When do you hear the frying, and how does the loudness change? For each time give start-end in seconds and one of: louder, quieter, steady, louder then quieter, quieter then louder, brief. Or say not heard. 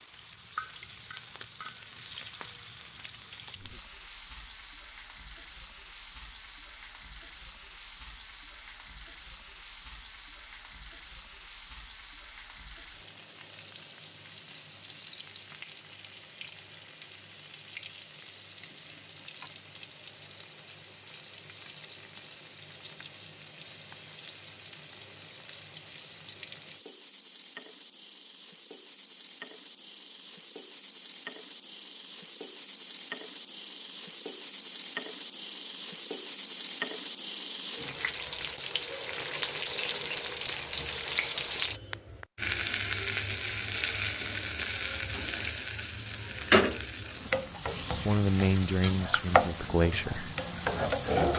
0.0-51.3 louder.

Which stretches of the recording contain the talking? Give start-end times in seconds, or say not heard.
48.0-50.4.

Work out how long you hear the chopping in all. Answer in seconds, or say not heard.
not heard.